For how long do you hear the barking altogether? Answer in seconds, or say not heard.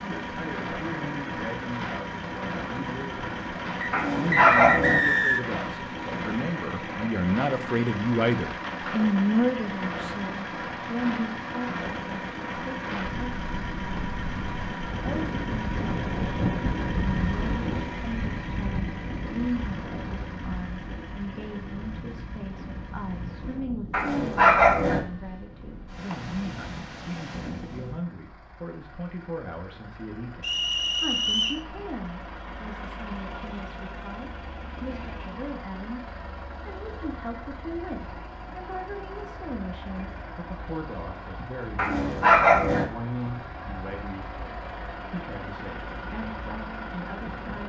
3 s.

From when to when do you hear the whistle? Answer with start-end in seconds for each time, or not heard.
3.8-5.5, 30.4-31.6.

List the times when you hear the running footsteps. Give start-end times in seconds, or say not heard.
not heard.